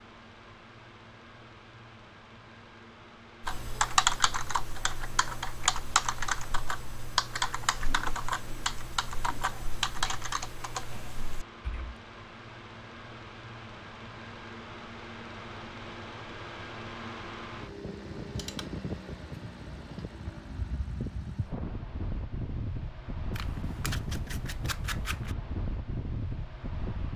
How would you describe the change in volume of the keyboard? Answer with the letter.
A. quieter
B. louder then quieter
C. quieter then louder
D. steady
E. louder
A.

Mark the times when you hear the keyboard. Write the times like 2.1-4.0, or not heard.
3.4-11.9.